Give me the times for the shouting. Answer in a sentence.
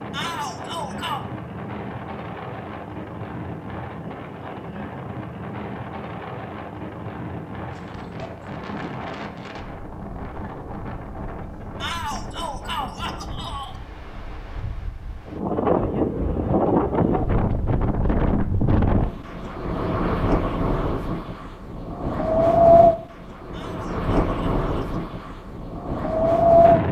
The shouting can be heard from 0.1 to 1.2 s, from 11.8 to 13.8 s and from 23.5 to 25.0 s.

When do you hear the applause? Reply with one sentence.
The applause can't be heard in this clip.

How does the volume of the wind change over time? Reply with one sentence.
The loudness of the wind goes up.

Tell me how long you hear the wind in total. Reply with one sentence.
The wind can be heard for 27 seconds in total.